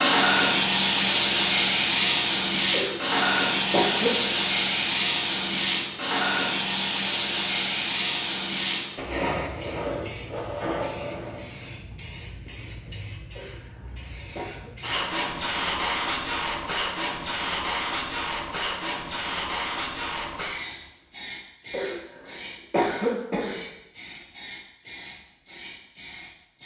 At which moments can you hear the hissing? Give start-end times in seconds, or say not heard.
0.0-26.6.